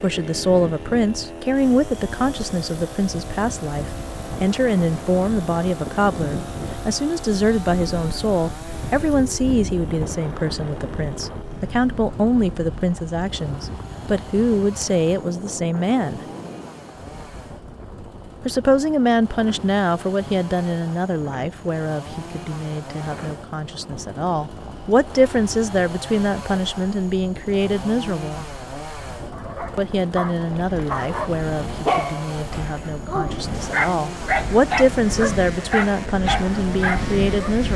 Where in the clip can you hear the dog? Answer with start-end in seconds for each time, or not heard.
29.3-37.6.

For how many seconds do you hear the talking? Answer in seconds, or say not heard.
34 s.